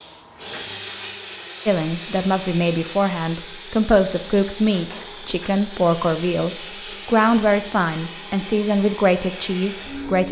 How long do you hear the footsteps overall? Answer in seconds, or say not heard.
not heard.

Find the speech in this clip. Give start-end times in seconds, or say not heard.
1.6-10.2.